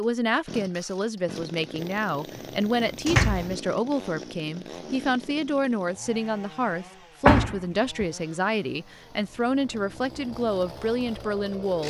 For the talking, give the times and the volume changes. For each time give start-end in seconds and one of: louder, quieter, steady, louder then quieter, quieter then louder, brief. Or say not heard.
0.0-11.8 steady.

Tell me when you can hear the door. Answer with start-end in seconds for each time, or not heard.
1.8-3.5, 7.2-8.1.